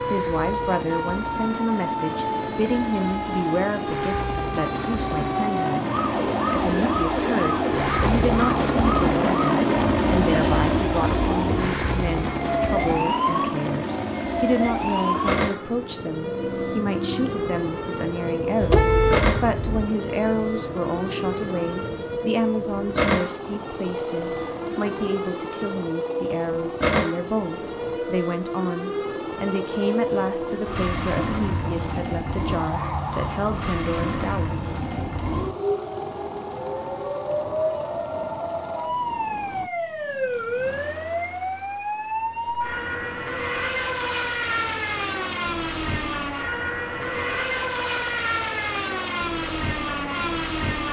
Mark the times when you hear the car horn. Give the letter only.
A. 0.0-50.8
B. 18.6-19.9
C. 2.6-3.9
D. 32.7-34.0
B.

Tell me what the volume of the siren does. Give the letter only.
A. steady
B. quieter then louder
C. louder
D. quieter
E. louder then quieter
A.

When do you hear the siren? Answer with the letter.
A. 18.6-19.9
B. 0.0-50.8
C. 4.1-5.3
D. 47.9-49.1
B.